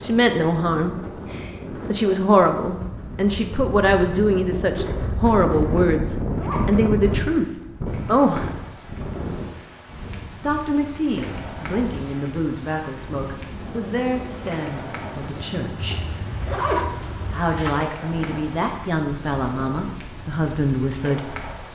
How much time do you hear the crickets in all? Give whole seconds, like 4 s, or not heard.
22 s.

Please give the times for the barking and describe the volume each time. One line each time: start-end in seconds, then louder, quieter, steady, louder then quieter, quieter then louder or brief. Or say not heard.
not heard.